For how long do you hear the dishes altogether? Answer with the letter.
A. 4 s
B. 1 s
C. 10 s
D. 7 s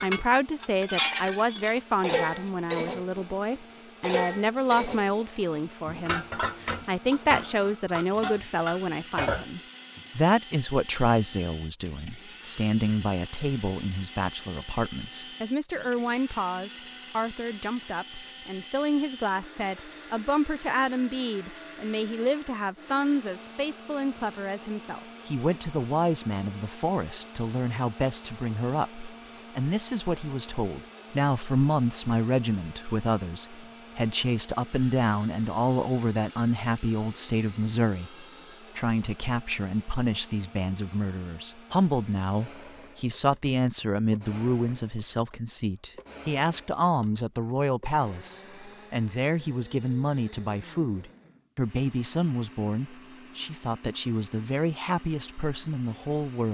C.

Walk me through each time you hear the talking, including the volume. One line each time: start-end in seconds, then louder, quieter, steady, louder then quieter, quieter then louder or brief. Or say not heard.
0.0-56.4 steady.